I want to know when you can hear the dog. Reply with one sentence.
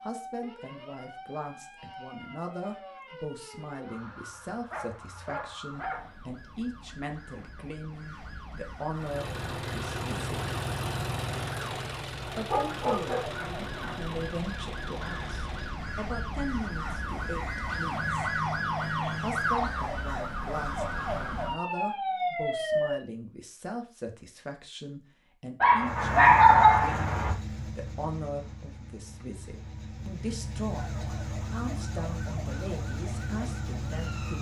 The dog can be heard from 4.7 to 6.2 s, from 12.4 to 14.0 s and from 25.6 to 27.4 s.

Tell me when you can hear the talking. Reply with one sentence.
The talking can be heard from 0.0 to 10.4 s, from 12.3 to 18.2 s and from 19.2 to 34.3 s.